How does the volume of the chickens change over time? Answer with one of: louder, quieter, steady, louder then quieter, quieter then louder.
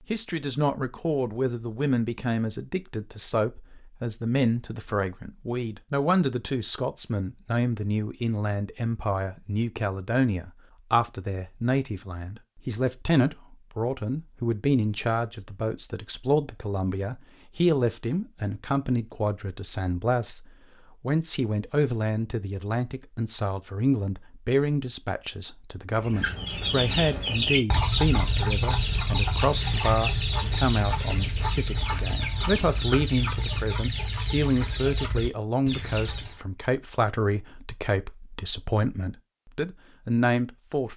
quieter.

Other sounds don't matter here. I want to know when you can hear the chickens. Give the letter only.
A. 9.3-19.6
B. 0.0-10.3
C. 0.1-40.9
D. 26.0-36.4
D.